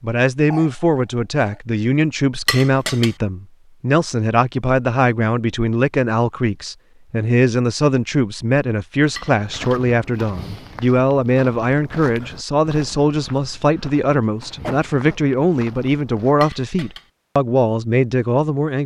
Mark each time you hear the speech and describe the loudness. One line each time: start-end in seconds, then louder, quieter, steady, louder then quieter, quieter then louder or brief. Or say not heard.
0.0-18.8 steady.